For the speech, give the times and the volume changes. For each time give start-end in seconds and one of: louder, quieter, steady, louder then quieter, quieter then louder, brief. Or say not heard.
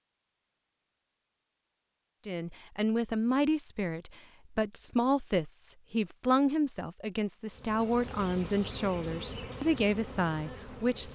2.2-11.1 steady.